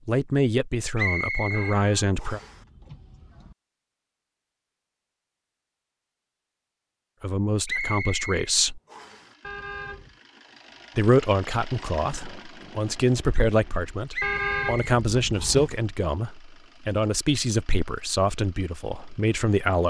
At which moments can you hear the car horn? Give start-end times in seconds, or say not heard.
1.5-3.5, 9.4-10.2, 14.2-15.8.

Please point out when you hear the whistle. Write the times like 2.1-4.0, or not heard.
0.9-2.5, 7.7-9.2, 14.1-15.7.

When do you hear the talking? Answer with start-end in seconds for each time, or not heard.
0.1-2.4, 7.2-8.8, 10.9-19.8.